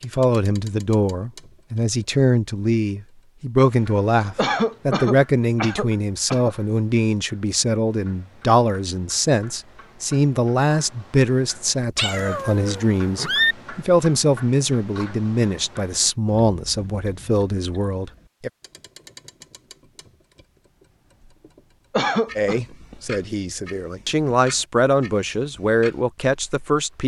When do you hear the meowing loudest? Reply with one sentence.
The volume of the meowing peaks at 13 seconds.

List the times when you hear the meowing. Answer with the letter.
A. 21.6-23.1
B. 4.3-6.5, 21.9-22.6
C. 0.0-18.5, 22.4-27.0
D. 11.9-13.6
D.